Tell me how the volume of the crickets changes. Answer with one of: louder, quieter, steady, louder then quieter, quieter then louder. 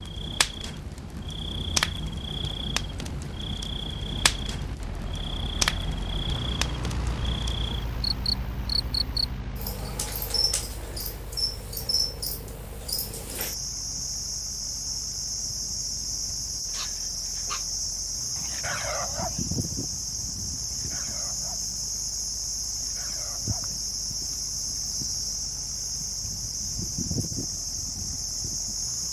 steady.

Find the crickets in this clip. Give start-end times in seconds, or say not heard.
0.0-29.0.